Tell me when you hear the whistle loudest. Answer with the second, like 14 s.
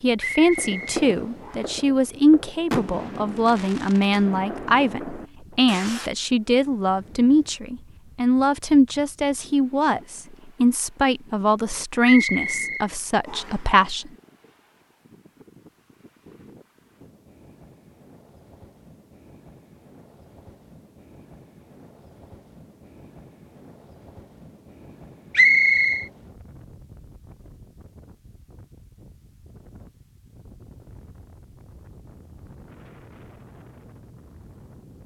26 s.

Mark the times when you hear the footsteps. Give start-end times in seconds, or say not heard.
not heard.